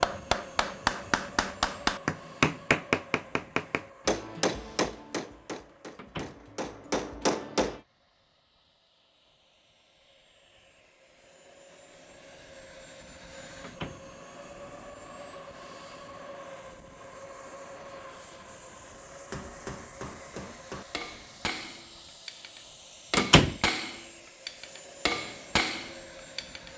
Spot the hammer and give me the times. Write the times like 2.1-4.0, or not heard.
0.0-7.8, 19.3-26.7.